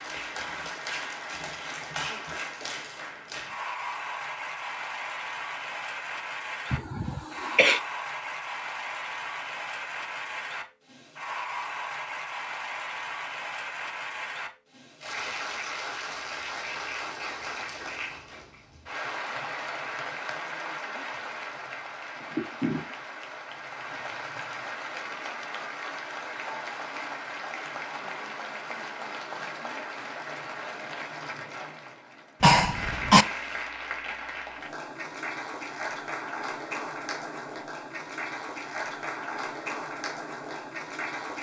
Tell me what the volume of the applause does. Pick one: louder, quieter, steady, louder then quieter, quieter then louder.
steady.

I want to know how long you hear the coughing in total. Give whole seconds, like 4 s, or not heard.
2 s.